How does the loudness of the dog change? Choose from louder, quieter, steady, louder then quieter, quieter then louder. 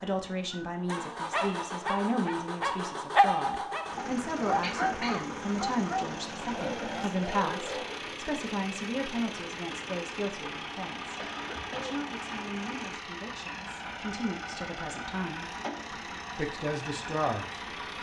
louder then quieter.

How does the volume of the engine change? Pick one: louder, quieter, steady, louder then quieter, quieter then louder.
steady.